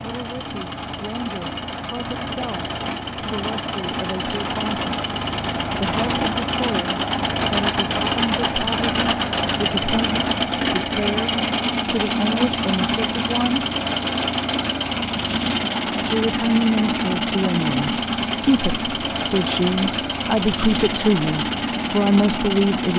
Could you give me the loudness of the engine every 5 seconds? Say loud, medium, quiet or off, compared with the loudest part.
medium, loud, loud, loud, loud.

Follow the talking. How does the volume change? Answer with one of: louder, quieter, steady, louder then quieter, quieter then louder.
louder.